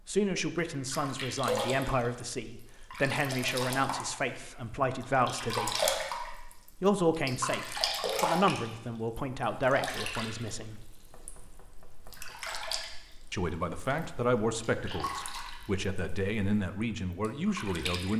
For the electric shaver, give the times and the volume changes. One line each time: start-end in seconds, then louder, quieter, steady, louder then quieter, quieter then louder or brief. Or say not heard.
not heard.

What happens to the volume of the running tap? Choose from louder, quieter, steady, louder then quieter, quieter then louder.
quieter.